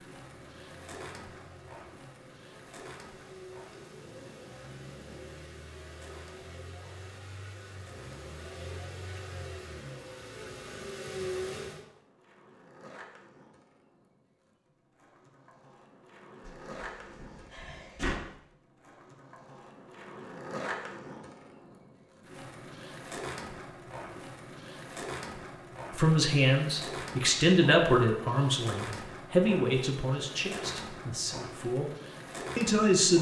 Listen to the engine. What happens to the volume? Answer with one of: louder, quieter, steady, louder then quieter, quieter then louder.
louder.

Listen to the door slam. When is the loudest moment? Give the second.
18 s.